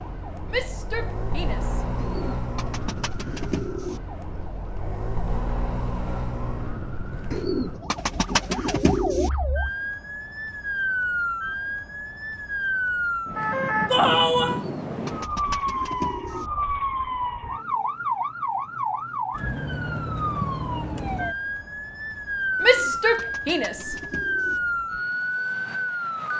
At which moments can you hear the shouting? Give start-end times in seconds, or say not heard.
0.5-1.9, 13.9-14.7, 22.6-23.9.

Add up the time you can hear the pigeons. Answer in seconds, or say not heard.
8 s.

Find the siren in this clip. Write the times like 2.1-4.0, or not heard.
0.0-26.3.